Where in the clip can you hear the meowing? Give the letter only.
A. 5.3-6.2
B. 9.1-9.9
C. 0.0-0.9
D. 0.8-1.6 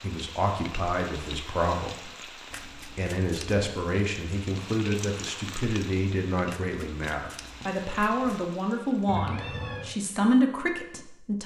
B.